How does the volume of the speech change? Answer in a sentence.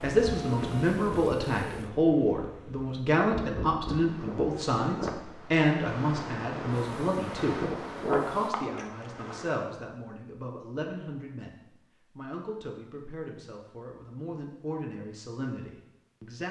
The volume of the speech goes down.